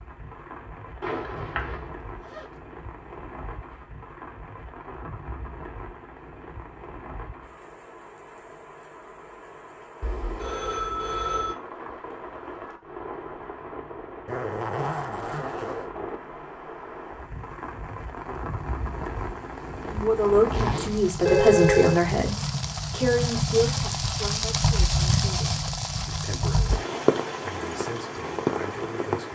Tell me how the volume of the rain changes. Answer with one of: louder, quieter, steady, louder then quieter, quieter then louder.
louder.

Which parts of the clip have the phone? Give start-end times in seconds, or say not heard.
1.0-1.9, 10.0-11.6, 21.2-22.0.